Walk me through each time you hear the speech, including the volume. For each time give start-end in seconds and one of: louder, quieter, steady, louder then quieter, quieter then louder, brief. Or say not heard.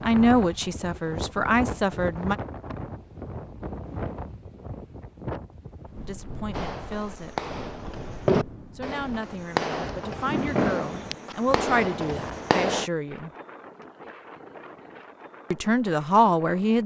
0.0-2.4 brief
6.0-7.4 brief
8.8-13.3 louder then quieter
15.5-16.8 brief.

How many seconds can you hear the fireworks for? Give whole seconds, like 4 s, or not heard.
6 s.